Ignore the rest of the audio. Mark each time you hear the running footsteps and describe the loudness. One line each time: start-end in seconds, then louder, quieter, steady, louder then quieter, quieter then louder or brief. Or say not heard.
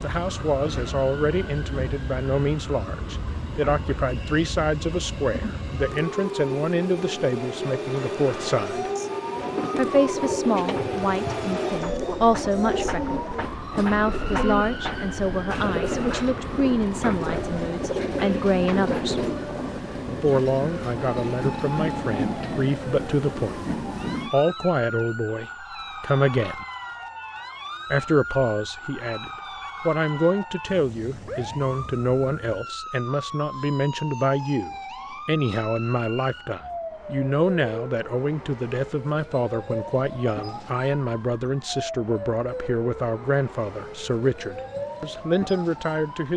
not heard.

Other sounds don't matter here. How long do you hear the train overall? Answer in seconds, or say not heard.
24 s.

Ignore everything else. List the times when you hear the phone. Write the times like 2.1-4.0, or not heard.
not heard.